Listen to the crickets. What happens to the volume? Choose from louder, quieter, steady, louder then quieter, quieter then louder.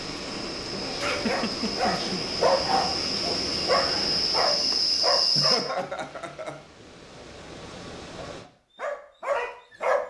louder.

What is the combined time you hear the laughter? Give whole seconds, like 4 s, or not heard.
3 s.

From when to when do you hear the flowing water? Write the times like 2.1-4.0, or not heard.
0.0-8.4.